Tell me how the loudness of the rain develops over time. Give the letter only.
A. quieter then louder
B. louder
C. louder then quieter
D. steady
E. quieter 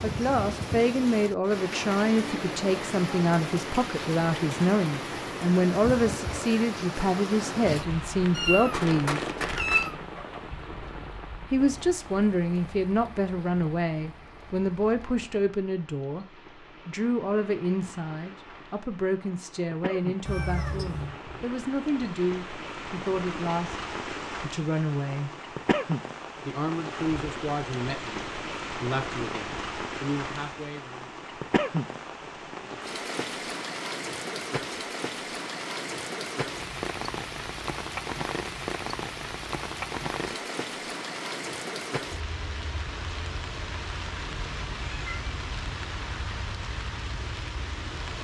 A.